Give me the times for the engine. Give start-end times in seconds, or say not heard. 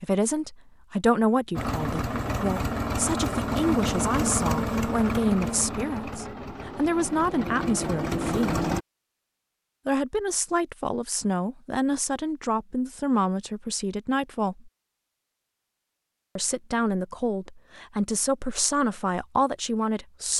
1.6-8.8.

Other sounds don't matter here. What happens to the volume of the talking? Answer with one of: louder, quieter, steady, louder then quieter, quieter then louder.
steady.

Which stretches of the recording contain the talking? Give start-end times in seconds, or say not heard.
0.0-8.7, 9.8-14.7, 16.4-20.3.